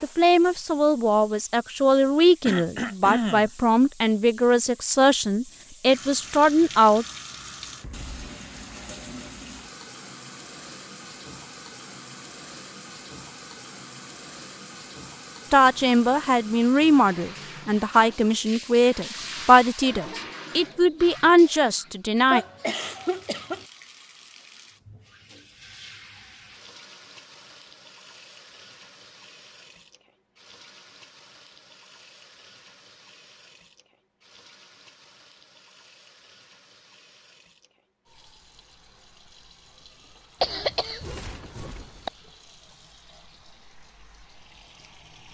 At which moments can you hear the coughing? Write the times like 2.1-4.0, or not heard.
2.5-3.5, 22.3-23.6, 40.4-42.1.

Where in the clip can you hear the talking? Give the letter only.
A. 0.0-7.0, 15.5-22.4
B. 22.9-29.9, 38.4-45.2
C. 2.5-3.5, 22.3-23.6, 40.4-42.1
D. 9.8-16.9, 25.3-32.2
A.